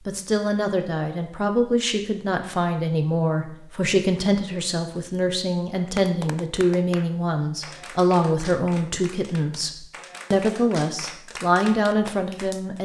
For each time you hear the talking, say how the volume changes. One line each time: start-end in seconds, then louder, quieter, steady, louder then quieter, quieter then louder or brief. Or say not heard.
0.1-12.8 steady.